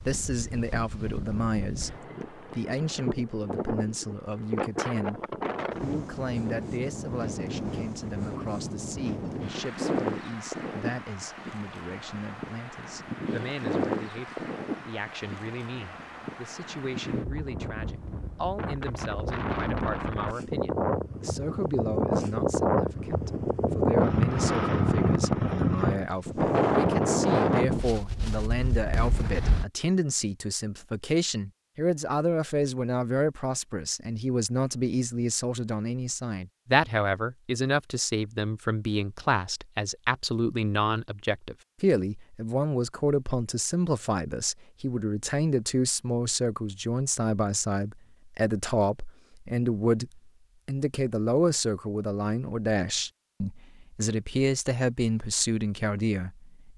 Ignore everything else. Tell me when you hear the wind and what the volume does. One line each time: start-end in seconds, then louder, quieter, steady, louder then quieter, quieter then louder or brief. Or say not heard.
0.0-29.6 louder.